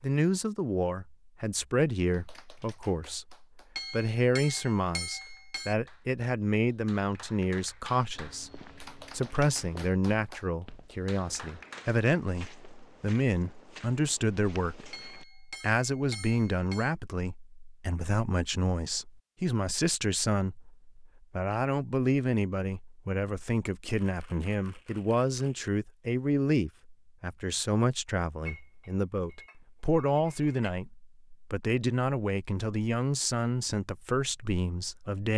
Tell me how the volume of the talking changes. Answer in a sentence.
The loudness of the talking stays about the same.